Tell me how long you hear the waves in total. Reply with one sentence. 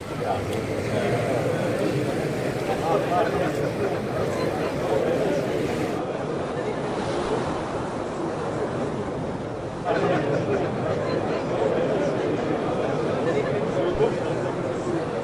The waves can be heard for 15 seconds in total.